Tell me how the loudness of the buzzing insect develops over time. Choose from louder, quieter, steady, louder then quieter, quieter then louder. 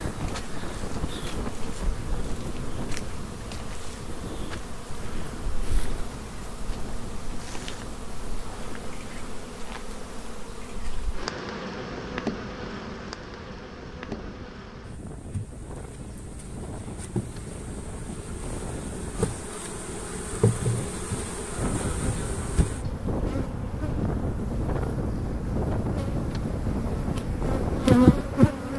louder.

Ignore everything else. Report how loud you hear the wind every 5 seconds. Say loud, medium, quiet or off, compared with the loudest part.
medium, quiet, quiet, medium, loud, loud.